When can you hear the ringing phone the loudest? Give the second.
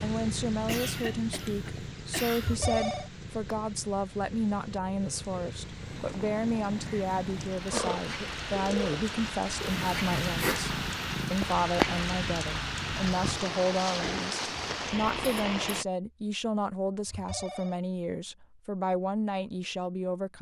3 s.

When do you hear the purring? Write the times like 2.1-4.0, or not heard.
0.0-13.4.